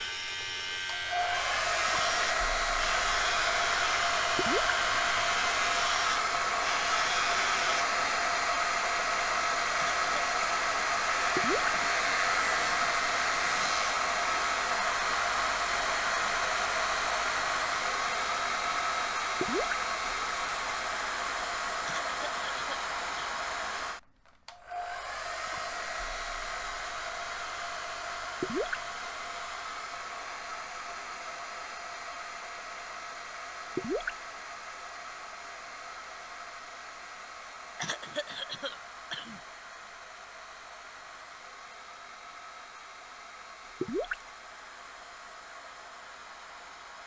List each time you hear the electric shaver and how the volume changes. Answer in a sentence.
You can hear the electric shaver from 0.0 to 8.3 s, at a steady volume; and briefly from 11.2 to 13.9 s.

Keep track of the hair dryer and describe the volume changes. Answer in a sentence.
The loudness of the hair dryer goes down.